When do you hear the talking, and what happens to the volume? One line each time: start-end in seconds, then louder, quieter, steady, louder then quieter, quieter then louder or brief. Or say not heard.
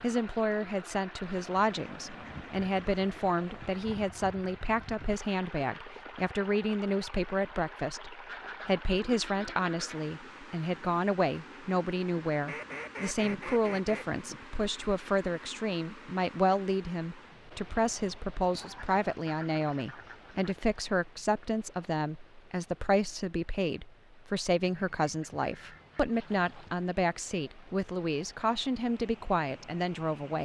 0.0-30.3 steady.